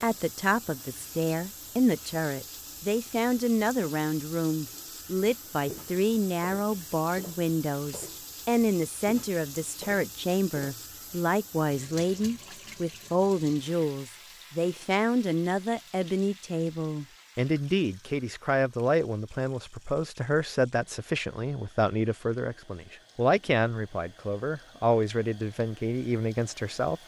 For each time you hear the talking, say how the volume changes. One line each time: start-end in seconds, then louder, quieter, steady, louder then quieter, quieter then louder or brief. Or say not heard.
0.0-27.0 steady.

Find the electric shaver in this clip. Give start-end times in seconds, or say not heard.
not heard.